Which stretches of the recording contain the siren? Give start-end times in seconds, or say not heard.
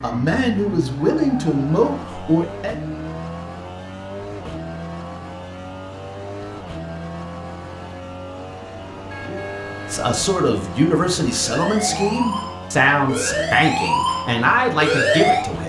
10.9-15.4.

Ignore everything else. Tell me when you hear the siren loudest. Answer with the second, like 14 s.
15 s.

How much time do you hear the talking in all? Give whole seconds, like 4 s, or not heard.
9 s.